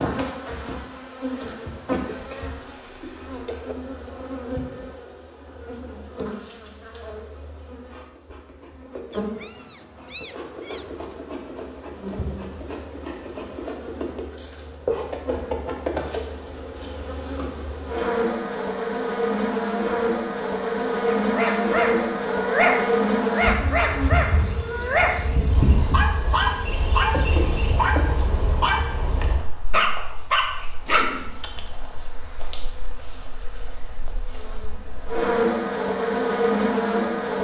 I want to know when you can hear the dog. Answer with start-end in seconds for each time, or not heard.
21.3-31.6.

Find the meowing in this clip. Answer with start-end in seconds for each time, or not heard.
9.1-11.2.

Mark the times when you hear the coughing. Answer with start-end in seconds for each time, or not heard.
1.9-3.8.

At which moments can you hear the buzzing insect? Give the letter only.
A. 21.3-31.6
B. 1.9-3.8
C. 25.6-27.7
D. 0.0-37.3
D.